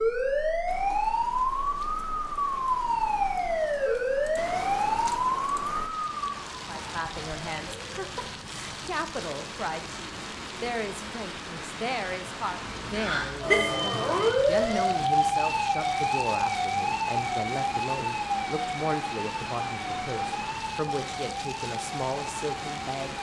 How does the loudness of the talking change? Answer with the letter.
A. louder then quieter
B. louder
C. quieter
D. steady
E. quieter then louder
D.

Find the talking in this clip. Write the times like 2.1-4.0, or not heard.
6.7-23.1.